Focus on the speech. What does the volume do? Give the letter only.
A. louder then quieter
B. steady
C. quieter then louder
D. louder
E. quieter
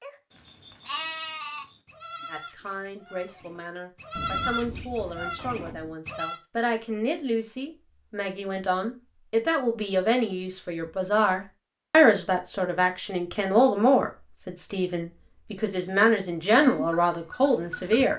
D.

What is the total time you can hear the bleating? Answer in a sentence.
You can hear the bleating for 8 seconds altogether.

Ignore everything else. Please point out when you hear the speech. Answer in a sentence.
You can hear the speech from 2.2 to 18.1 s.